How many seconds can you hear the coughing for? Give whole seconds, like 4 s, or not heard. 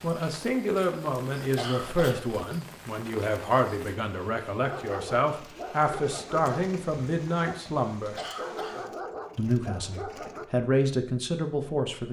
2 s.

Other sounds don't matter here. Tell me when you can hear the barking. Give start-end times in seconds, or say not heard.
4.5-10.4.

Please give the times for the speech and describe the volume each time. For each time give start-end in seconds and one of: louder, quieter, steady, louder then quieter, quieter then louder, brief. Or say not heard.
0.0-8.2 steady
9.3-12.0 brief.